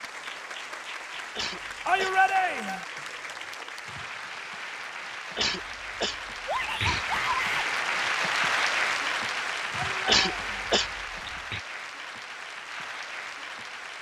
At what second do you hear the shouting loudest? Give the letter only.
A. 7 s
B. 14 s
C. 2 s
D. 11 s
C.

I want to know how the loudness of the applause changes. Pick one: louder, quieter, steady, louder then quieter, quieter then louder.
louder then quieter.